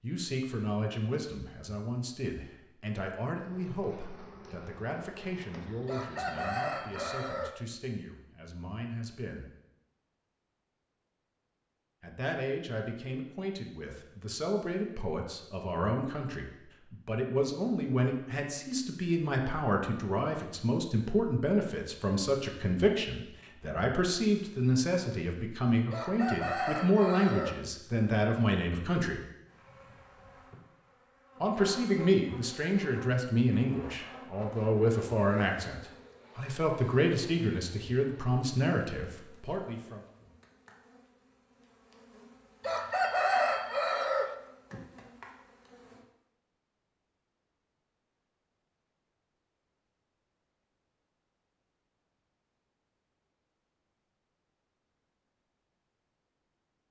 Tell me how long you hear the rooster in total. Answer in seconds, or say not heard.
5 s.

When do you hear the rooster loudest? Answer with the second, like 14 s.
43 s.